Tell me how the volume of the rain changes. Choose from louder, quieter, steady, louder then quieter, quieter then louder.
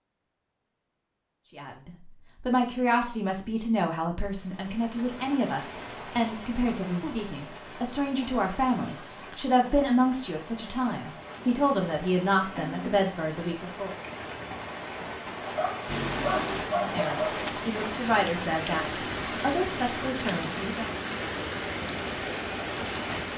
louder.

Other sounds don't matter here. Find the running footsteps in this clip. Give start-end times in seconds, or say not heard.
not heard.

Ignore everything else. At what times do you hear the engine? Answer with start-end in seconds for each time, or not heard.
15.8-17.6.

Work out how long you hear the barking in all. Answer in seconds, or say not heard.
2 s.